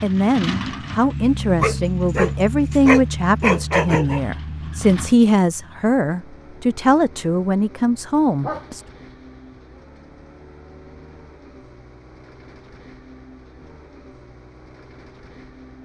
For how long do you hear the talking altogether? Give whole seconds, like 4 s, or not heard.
9 s.